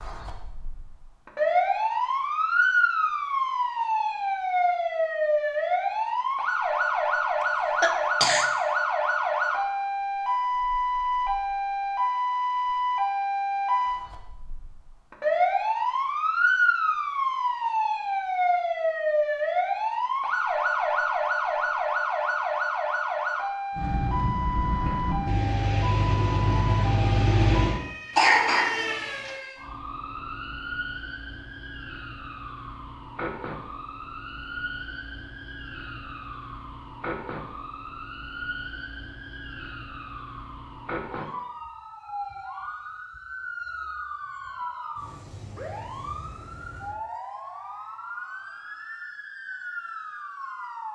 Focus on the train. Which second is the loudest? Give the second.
27 s.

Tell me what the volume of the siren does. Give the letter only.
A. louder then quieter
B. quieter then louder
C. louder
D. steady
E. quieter
E.